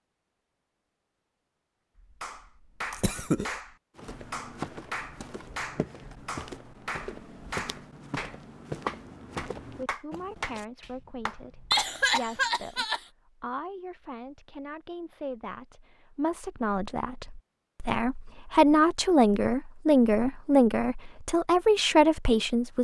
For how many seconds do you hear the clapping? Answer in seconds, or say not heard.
10 s.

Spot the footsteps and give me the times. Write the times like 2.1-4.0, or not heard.
4.0-10.7.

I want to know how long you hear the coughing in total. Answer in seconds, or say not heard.
2 s.